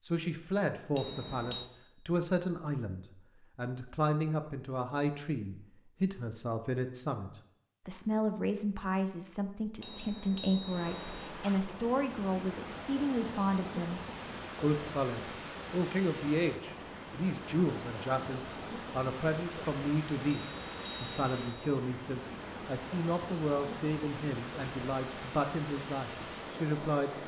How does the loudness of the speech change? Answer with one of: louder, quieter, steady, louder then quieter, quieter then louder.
steady.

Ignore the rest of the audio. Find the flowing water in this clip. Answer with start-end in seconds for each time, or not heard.
10.6-27.2.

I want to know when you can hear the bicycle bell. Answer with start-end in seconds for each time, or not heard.
0.9-1.6, 9.8-11.3, 20.4-21.8.